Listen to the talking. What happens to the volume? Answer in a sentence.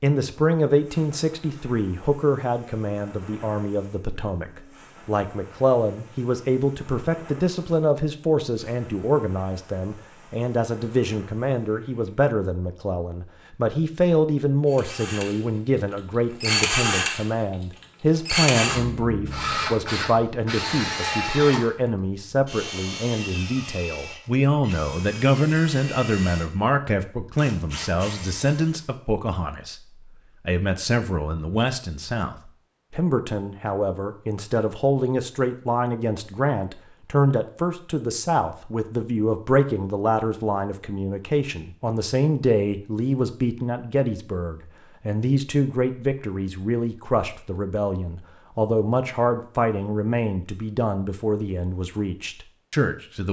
The volume of the talking stays about the same.